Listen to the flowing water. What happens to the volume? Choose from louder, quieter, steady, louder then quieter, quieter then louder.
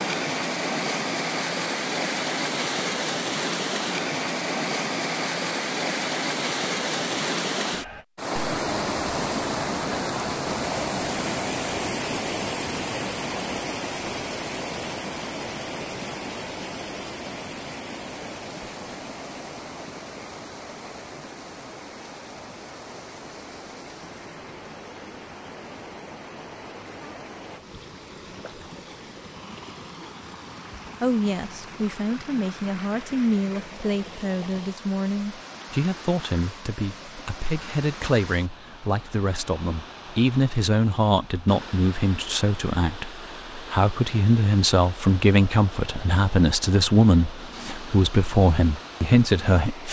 quieter.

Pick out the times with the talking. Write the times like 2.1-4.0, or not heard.
31.0-49.8.